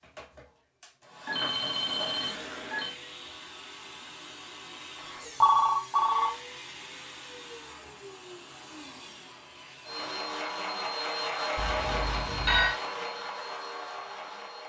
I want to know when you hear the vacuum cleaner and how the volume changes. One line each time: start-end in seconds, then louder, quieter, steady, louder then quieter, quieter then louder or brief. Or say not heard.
0.0-14.6 louder.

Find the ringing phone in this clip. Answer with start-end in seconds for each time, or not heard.
1.2-3.0, 5.4-6.3, 11.6-12.8.